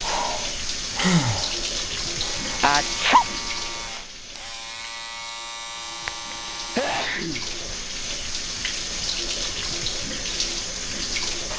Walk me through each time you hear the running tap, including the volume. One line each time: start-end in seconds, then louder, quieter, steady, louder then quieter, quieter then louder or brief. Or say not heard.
0.0-11.5 quieter then louder.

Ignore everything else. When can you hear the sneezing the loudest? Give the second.
3 s.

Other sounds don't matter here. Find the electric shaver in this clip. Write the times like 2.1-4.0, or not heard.
2.1-7.0.